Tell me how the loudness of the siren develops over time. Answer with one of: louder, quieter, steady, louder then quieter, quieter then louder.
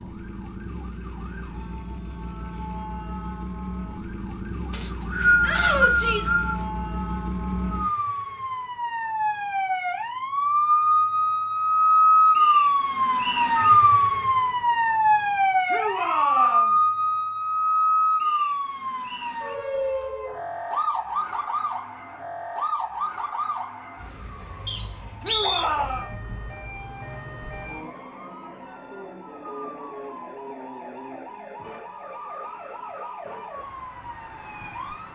louder then quieter.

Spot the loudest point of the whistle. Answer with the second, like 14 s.
5 s.